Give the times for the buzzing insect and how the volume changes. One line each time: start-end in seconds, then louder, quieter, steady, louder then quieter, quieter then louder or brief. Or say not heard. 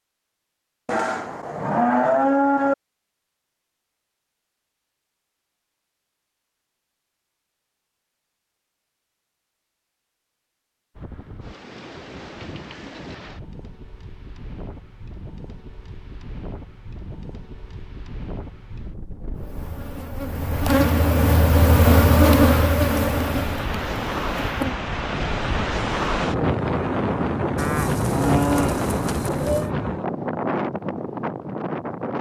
19.4-24.8 louder then quieter.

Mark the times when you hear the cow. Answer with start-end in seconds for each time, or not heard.
0.8-2.8, 27.6-29.7.